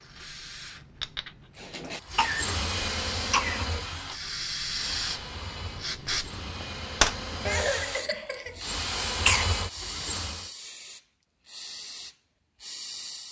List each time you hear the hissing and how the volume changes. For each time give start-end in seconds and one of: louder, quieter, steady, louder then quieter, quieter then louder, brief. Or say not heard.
0.0-13.2 louder then quieter.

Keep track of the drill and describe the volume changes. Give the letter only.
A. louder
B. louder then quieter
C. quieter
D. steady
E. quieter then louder
E.